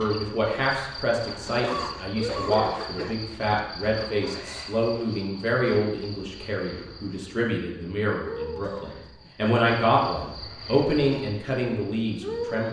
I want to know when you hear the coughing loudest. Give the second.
2 s.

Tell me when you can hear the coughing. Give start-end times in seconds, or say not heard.
1.4-3.2, 8.6-9.3.